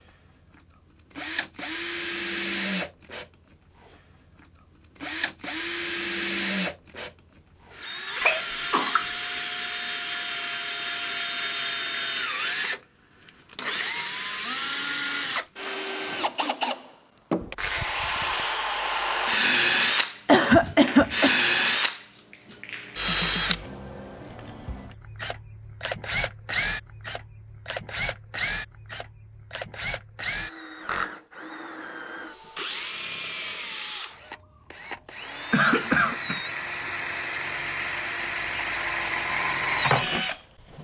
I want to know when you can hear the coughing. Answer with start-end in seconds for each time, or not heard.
8.2-9.1, 20.2-21.4, 35.0-36.4.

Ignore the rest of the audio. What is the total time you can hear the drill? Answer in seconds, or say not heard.
41 s.